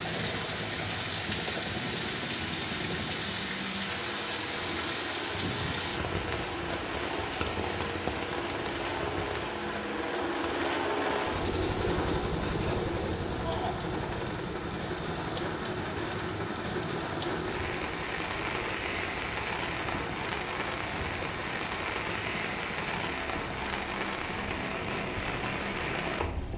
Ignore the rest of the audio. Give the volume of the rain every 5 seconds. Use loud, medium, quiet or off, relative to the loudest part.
loud, loud, medium, loud, loud, loud.